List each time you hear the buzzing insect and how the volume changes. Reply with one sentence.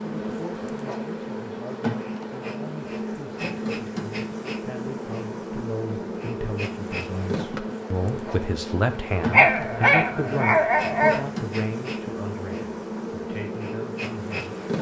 The buzzing insect can be heard from 0.0 to 14.7 s, at a steady volume.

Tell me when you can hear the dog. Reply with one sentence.
The dog can be heard from 9.3 to 11.2 s.